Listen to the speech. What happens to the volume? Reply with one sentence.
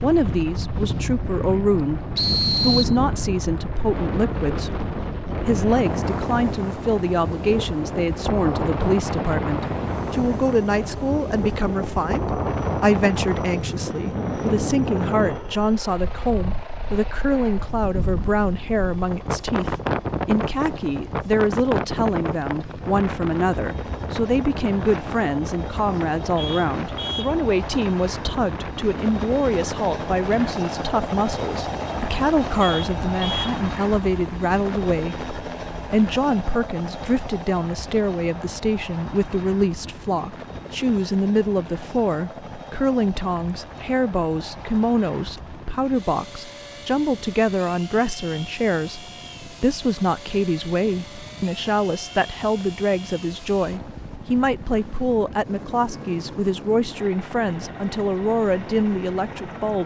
The volume of the speech stays about the same.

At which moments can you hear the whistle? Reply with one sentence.
The whistle can be heard from 2.1 to 3.0 s.